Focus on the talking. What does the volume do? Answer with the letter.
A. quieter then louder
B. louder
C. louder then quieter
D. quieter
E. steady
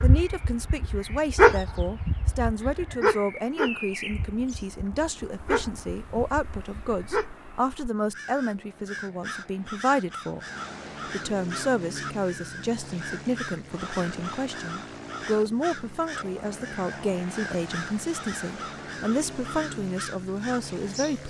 E.